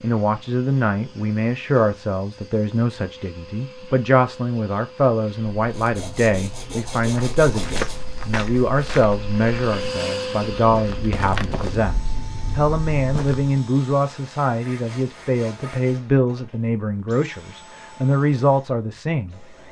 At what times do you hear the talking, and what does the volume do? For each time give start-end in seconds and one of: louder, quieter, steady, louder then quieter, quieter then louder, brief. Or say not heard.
0.0-19.6 steady.